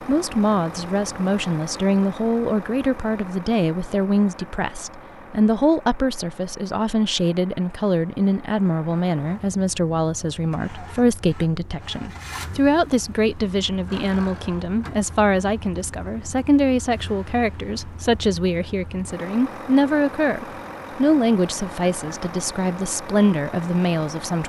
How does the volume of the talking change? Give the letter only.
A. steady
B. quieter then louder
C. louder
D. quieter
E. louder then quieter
A.